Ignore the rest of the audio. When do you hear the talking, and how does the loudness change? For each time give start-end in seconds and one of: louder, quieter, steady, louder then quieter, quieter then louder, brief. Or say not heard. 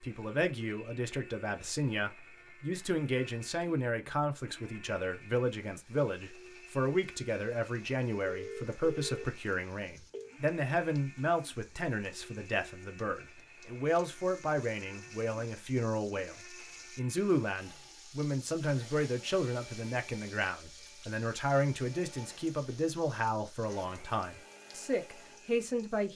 0.0-16.4 steady
16.9-26.1 steady.